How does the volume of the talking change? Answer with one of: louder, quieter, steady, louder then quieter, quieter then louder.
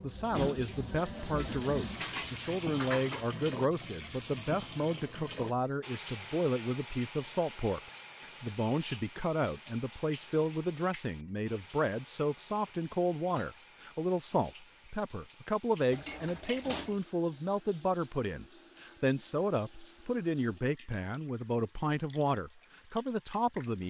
steady.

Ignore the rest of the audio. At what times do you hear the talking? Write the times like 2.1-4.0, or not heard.
0.0-7.8, 8.4-23.8.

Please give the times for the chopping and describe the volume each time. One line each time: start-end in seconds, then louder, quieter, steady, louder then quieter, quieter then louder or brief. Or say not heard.
not heard.